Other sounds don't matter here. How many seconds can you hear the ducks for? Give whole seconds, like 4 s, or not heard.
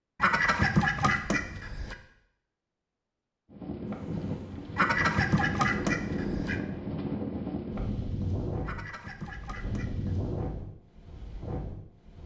5 s.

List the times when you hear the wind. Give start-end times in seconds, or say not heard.
3.5-12.2.